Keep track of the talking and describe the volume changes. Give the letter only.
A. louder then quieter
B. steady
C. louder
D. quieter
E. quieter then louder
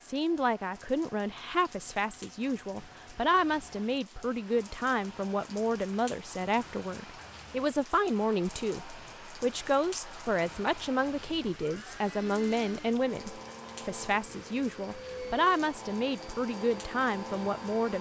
B.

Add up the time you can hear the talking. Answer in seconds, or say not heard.
18 s.